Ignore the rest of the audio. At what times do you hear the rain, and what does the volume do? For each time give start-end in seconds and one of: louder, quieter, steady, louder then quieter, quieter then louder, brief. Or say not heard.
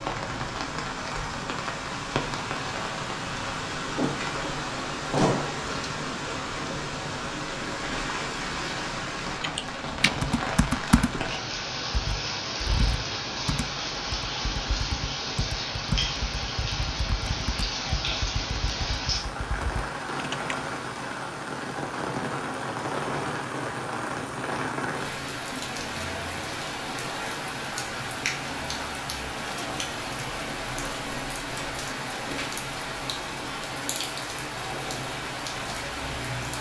0.0-36.5 steady.